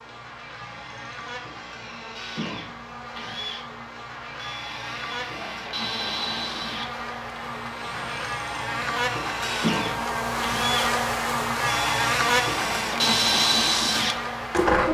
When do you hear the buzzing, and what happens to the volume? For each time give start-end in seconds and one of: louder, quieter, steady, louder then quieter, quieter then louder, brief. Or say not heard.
0.0-14.8 louder.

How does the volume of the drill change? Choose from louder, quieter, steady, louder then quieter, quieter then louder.
louder.